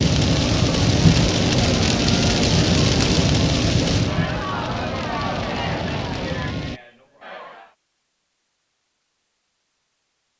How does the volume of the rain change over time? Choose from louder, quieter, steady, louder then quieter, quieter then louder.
quieter.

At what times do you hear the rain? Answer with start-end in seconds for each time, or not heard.
0.0-6.8.